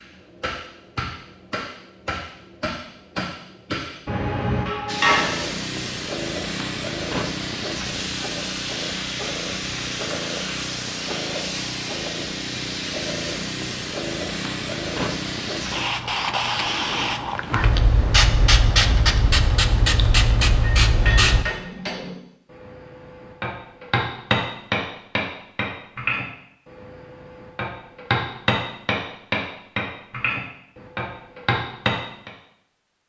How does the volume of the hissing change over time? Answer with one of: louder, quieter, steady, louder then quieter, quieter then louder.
louder.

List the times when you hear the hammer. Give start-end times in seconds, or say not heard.
0.0-5.3, 20.9-32.3.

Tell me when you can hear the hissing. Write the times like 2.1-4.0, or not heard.
4.8-21.4.